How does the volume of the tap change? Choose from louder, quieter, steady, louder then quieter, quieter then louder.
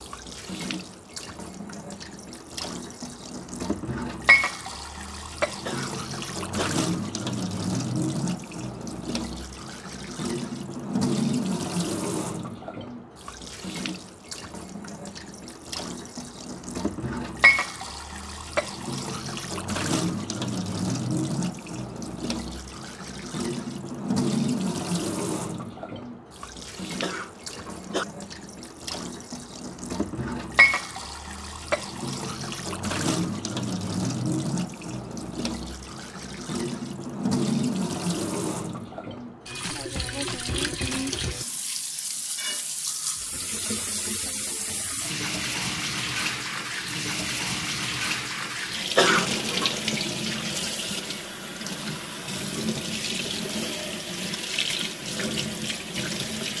steady.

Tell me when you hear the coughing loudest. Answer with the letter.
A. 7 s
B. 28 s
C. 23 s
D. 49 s
D.